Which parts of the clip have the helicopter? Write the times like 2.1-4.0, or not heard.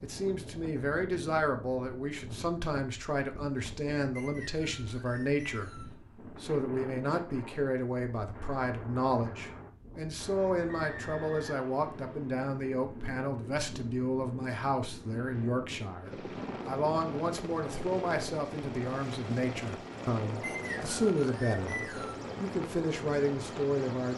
16.1-24.1.